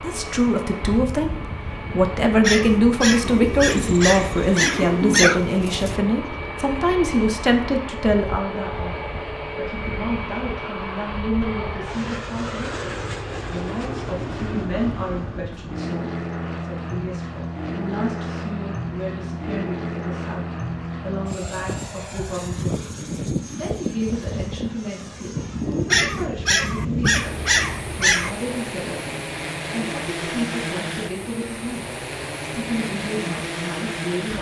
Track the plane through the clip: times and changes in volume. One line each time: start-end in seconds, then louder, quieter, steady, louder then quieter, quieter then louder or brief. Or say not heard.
0.0-34.3 steady.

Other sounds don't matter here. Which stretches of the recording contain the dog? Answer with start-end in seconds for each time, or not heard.
2.4-5.4, 25.9-28.4.